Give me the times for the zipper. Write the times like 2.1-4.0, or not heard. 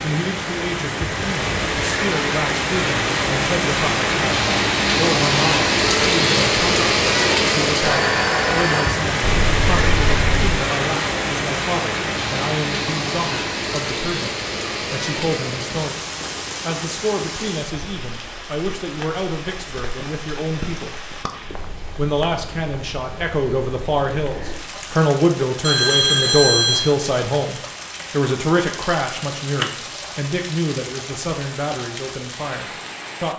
9.2-10.6.